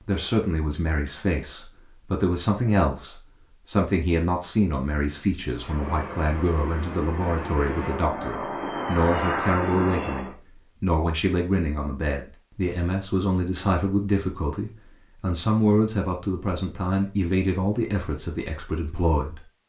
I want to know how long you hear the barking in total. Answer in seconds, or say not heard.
not heard.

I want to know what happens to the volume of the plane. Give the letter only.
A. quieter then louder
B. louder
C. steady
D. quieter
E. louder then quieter
B.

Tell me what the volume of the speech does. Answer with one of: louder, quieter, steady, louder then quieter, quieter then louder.
steady.